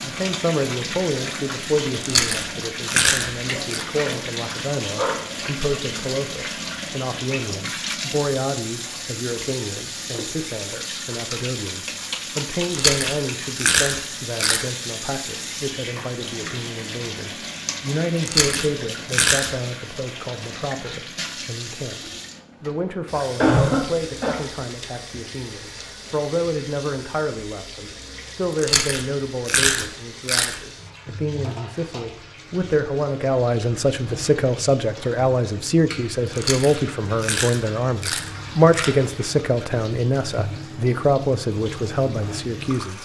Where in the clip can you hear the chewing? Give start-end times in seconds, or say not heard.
2.0-3.9, 12.7-14.7, 18.2-19.5, 28.6-30.6, 36.3-38.9.